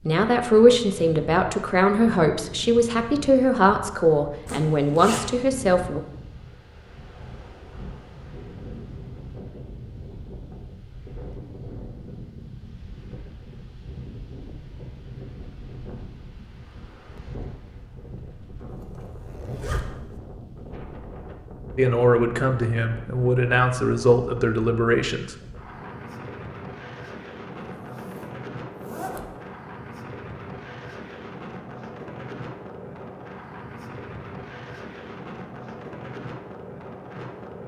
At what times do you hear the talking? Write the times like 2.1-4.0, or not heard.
0.1-6.0, 21.8-25.4.